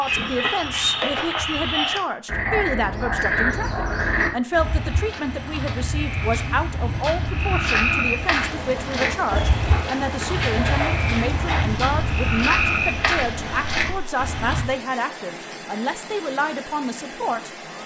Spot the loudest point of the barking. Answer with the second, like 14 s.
11 s.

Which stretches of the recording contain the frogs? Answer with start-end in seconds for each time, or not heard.
0.0-14.7.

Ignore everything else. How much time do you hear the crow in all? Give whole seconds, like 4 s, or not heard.
not heard.